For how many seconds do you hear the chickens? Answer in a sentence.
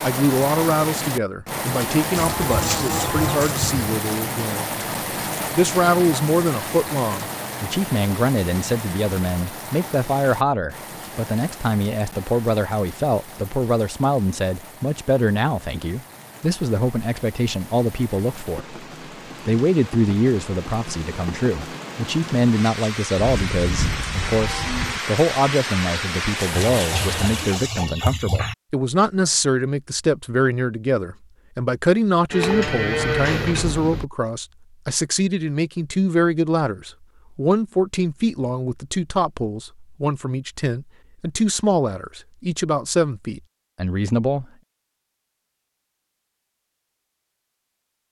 You can hear the chickens for 4 seconds altogether.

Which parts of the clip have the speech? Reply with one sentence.
You can hear the speech from 0.0 to 4.8 s, from 5.5 to 18.8 s and from 19.4 to 44.5 s.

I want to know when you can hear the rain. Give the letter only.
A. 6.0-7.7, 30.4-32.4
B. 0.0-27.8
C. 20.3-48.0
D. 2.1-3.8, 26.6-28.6
B.